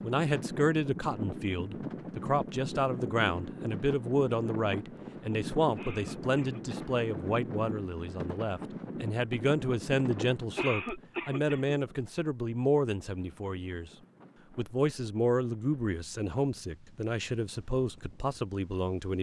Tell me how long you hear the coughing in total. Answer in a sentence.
The coughing can be heard for 2 seconds in total.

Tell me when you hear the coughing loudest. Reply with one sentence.
The loudest moment of the coughing is at 11 seconds.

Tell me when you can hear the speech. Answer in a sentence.
The speech can be heard from 0.0 to 13.9 s and from 14.6 to 19.1 s.